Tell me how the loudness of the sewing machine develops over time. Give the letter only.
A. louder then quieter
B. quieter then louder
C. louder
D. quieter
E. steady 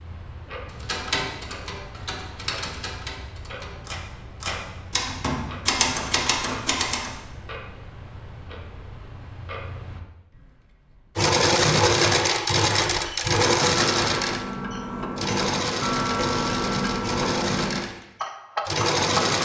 D.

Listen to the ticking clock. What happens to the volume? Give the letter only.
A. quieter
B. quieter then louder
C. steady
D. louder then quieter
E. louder
E.